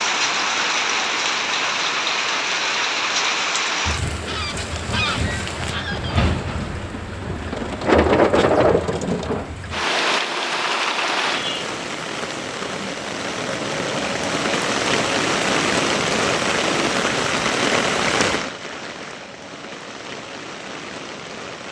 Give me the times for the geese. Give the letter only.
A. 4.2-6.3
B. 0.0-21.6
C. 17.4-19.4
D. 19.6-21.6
A.